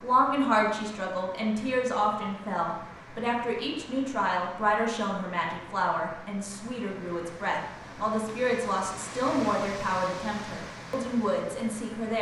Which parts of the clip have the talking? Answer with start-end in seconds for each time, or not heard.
0.0-12.1.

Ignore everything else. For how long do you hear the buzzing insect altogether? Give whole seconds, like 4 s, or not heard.
not heard.